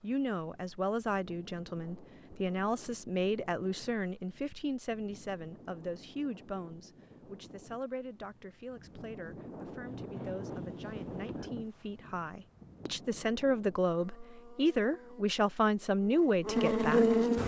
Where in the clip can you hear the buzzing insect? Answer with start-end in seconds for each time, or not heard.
13.9-17.4.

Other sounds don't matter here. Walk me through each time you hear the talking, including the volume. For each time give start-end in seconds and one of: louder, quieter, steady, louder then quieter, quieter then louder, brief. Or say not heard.
0.0-17.2 quieter then louder.